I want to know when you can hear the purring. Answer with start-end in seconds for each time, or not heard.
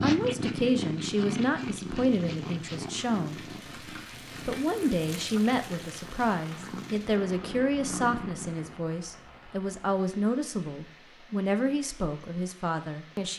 0.0-8.8.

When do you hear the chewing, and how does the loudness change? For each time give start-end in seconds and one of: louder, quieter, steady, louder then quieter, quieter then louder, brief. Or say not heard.
not heard.